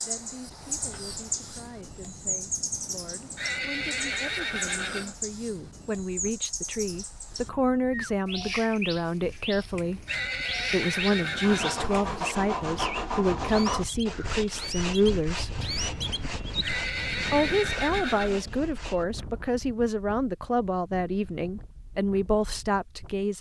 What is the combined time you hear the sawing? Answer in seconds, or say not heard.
8 s.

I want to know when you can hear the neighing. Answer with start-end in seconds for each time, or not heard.
3.4-5.2, 10.1-11.9, 16.6-18.4.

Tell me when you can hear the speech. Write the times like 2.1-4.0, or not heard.
0.0-10.0, 10.7-15.5, 17.3-23.3.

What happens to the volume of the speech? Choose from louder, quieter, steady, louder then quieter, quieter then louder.
louder.